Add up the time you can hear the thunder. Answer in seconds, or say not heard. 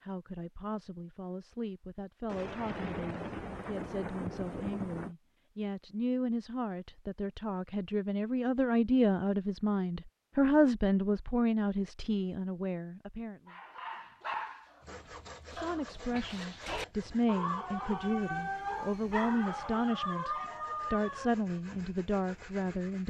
3 s.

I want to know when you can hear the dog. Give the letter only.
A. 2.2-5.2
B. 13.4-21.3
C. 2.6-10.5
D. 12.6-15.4
B.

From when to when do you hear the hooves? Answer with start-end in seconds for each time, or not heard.
not heard.